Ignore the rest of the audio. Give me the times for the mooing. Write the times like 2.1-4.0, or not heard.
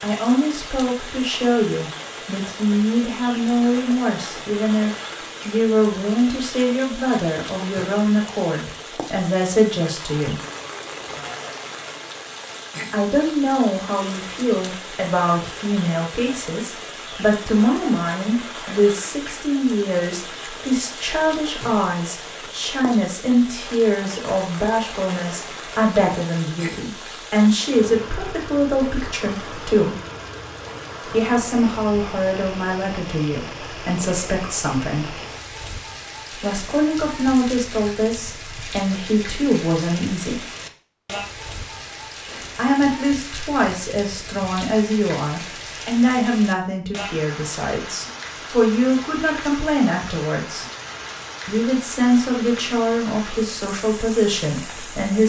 10.3-11.4.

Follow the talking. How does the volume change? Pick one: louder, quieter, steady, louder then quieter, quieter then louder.
steady.